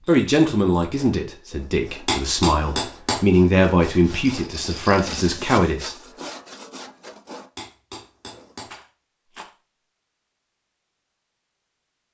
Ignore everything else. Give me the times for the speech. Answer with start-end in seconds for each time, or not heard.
0.1-6.0.